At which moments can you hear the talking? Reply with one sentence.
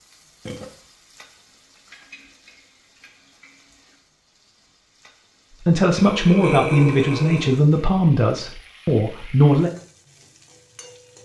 The talking can be heard from 5.7 to 9.7 s.